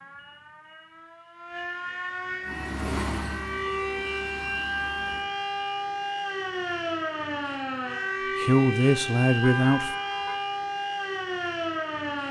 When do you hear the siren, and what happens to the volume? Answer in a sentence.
You can hear the siren from 0.0 to 12.2 s, getting louder.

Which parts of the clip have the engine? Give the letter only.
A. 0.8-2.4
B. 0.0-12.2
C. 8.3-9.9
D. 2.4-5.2
D.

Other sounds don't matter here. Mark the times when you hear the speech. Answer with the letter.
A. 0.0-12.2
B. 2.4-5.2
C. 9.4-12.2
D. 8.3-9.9
D.